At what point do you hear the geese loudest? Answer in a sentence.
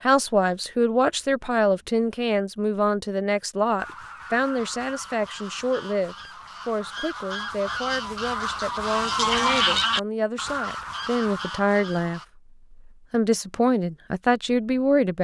The volume of the geese peaks at 10 seconds.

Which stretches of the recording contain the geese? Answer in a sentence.
The geese can be heard from 3.8 to 12.2 s.